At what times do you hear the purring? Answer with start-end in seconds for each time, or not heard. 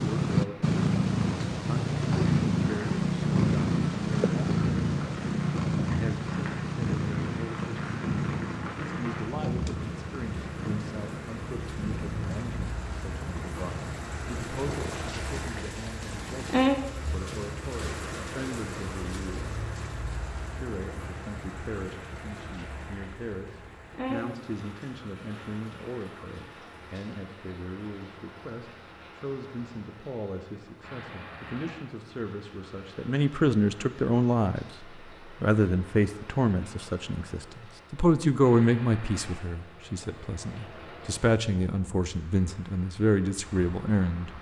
0.0-16.6.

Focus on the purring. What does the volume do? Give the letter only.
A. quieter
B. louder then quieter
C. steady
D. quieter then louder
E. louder
A.